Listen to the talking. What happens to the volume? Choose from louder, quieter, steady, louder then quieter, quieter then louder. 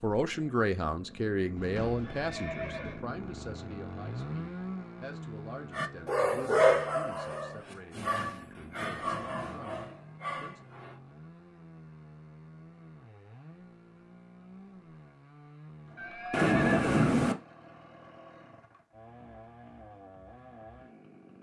quieter.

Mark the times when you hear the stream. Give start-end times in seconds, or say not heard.
not heard.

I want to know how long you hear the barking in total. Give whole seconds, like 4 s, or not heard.
5 s.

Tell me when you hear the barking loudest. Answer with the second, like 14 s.
7 s.